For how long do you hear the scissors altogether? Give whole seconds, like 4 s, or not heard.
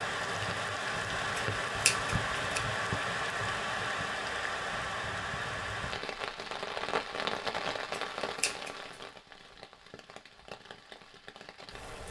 2 s.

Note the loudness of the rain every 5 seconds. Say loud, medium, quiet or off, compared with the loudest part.
loud, loud, quiet.